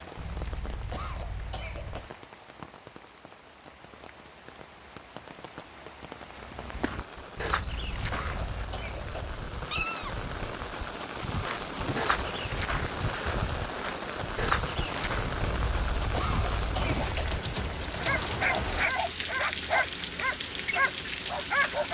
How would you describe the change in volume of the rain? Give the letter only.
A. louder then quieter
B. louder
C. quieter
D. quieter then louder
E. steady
B.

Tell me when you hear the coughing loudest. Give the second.
16 s.